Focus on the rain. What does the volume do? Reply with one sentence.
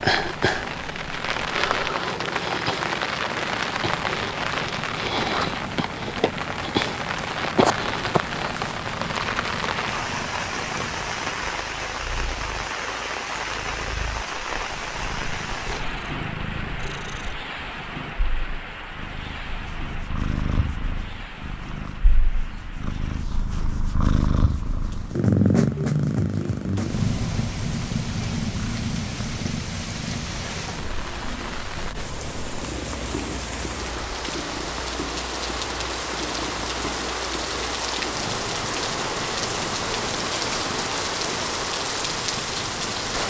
The volume of the rain goes down, then up.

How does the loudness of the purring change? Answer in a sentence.
The volume of the purring goes up, then down.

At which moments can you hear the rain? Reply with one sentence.
You can hear the rain from 0.0 to 43.2 s.